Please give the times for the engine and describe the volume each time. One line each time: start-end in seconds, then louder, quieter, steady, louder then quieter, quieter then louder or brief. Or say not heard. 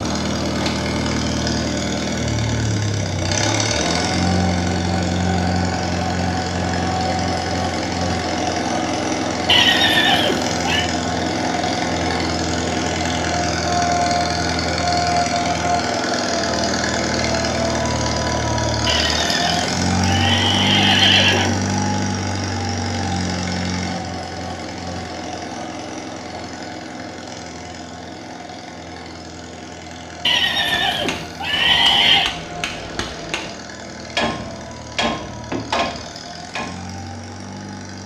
0.0-38.0 quieter.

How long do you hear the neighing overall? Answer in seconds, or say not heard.
6 s.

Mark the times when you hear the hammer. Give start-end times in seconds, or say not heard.
30.9-36.8.